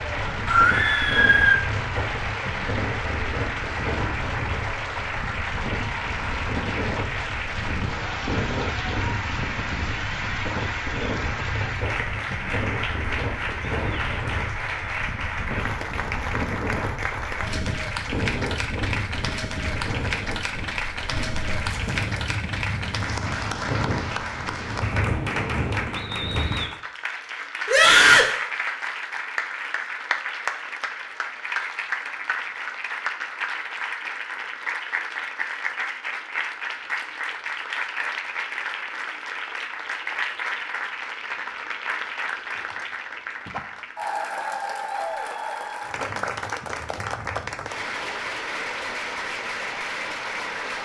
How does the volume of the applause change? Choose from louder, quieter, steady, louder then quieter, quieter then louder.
steady.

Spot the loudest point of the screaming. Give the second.
28 s.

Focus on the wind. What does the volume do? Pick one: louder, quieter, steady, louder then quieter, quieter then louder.
steady.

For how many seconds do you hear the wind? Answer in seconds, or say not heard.
27 s.